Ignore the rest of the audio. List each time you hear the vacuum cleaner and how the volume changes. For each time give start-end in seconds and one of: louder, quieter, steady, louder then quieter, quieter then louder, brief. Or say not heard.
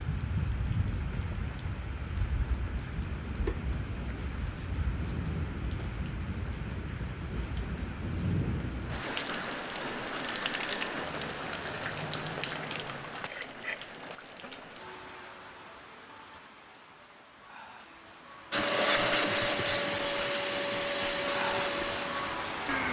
18.5-22.8 quieter.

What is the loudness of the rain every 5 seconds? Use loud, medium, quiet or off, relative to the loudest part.
loud, loud, loud, quiet, loud.